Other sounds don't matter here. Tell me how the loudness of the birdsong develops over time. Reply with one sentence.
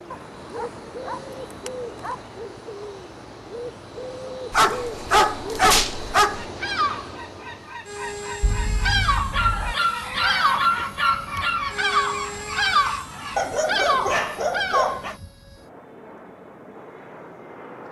The volume of the birdsong goes up.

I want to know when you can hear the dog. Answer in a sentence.
The dog can be heard from 0.1 to 2.1 s, from 4.5 to 6.5 s, from 9.3 to 11.7 s and from 13.3 to 15.2 s.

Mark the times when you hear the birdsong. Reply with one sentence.
You can hear the birdsong from 0.0 to 15.2 s.